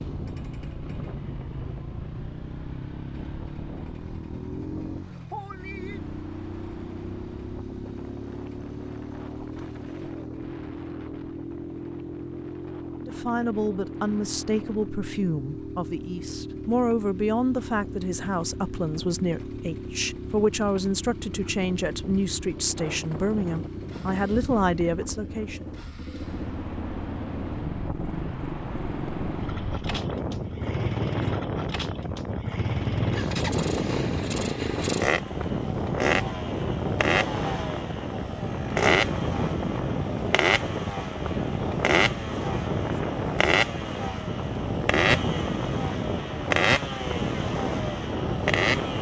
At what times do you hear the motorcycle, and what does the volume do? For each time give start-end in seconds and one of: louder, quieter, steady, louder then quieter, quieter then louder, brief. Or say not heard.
0.0-48.9 louder.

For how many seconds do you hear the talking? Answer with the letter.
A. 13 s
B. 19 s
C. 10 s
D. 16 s
A.